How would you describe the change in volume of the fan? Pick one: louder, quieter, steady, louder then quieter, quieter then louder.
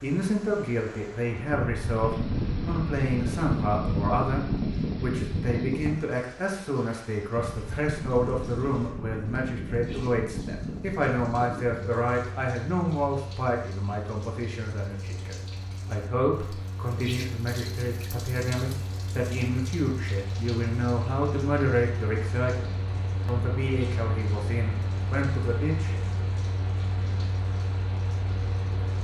quieter then louder.